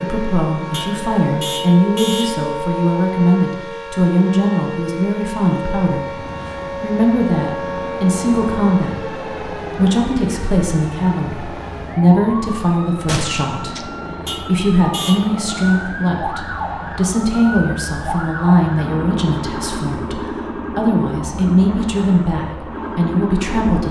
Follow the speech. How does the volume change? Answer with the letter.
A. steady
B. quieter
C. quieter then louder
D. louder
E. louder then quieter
A.